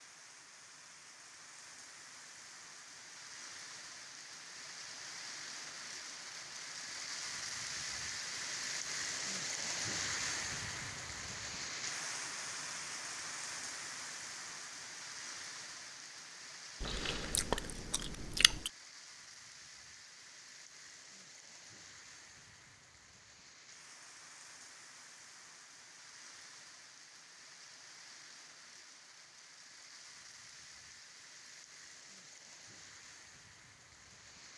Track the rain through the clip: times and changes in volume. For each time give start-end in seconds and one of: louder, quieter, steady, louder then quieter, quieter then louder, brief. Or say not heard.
0.0-34.5 louder then quieter.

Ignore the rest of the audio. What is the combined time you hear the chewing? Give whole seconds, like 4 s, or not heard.
2 s.